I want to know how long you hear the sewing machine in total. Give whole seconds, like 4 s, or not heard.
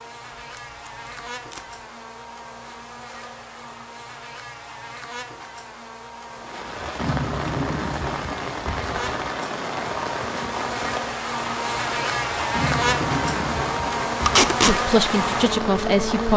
not heard.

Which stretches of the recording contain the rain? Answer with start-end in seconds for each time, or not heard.
6.3-16.3.